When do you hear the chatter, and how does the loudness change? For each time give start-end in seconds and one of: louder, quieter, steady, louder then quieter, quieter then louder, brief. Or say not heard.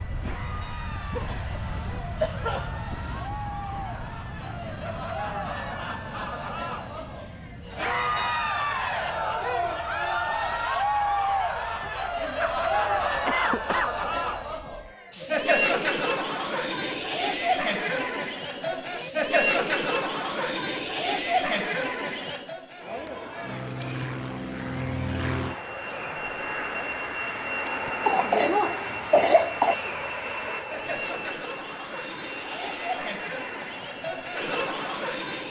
0.1-35.4 louder then quieter.